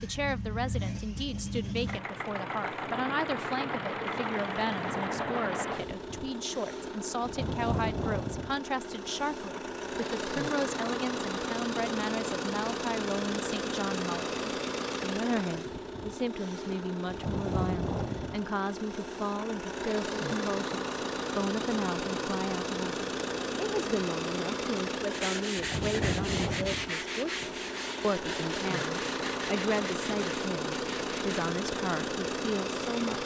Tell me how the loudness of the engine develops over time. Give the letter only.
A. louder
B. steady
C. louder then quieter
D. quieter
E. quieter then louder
B.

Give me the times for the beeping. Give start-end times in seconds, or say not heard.
not heard.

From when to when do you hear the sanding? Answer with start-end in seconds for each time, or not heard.
25.1-31.4.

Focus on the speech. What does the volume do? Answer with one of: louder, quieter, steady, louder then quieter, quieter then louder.
steady.